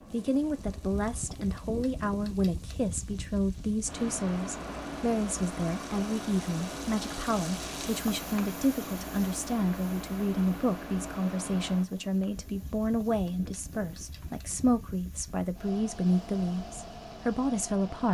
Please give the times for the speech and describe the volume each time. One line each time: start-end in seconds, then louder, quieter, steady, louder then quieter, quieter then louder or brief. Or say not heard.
0.1-18.0 steady.